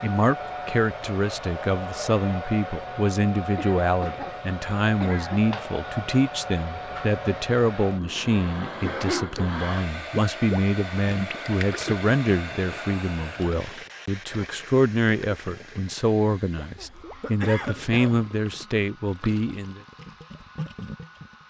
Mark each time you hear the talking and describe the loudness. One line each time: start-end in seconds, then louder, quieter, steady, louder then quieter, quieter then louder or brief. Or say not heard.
0.0-19.8 steady.